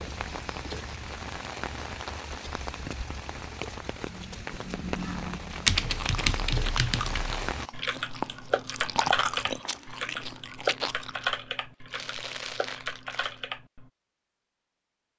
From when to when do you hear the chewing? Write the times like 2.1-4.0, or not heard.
5.8-11.3, 11.9-13.4.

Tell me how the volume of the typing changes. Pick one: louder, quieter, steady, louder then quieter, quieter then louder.
quieter.